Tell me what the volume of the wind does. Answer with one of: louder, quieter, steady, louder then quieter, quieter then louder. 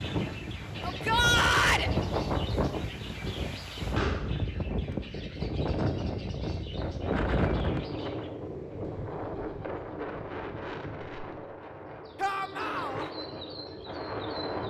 quieter.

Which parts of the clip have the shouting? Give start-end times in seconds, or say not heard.
0.8-1.9, 12.2-13.1.